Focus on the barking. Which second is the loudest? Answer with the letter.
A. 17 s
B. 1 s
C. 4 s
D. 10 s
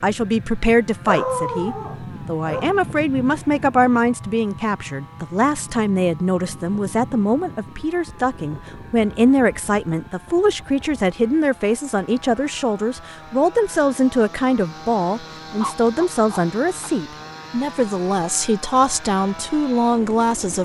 B.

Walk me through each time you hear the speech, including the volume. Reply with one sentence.
The speech can be heard from 0.0 to 20.6 s, at a steady volume.